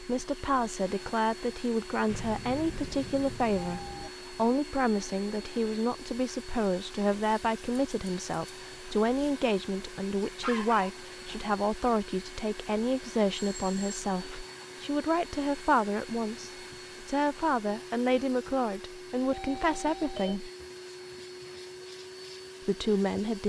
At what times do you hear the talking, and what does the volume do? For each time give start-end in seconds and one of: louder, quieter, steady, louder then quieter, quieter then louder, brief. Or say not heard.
0.0-20.5 steady
22.6-23.4 brief.